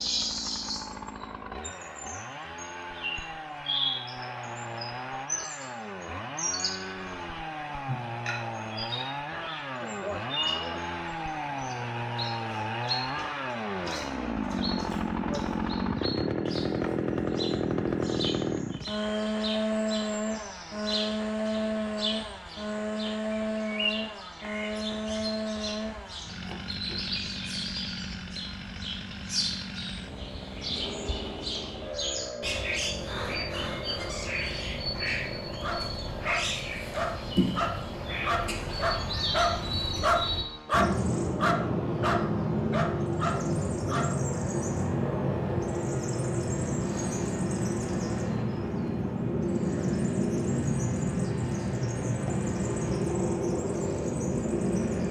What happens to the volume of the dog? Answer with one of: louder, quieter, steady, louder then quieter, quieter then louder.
louder then quieter.